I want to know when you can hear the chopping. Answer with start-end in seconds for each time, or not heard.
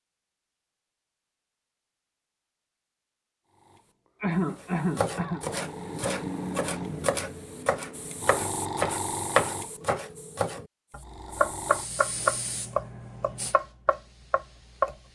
4.5-14.9.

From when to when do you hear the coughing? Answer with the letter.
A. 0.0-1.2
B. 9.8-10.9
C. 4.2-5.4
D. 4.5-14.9
C.